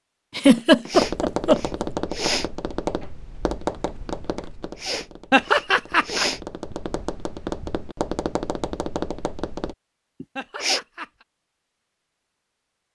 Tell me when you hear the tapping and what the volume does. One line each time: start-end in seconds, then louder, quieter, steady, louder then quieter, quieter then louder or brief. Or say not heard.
0.9-9.8 quieter then louder.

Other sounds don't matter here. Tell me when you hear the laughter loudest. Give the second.
1 s.